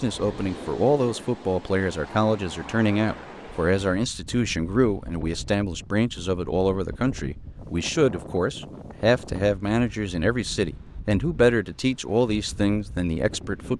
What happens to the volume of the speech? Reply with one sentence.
The loudness of the speech stays about the same.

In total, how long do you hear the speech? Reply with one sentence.
The speech can be heard for 14 seconds in total.